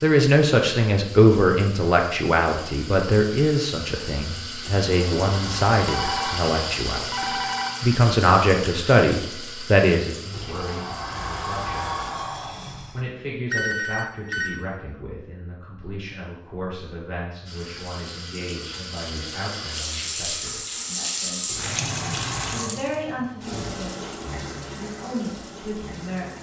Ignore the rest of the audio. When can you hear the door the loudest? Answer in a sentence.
The volume of the door peaks at 12 seconds.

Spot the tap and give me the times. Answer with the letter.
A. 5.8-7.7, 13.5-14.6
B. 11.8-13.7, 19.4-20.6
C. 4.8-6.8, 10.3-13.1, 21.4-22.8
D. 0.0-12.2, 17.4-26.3
D.